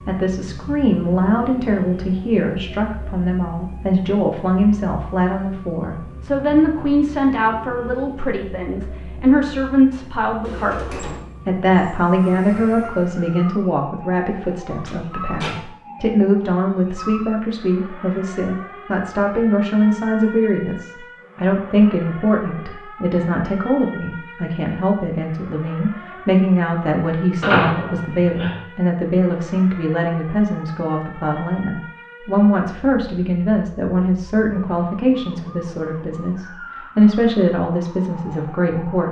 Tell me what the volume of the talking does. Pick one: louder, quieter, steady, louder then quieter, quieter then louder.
steady.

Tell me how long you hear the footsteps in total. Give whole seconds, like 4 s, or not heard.
not heard.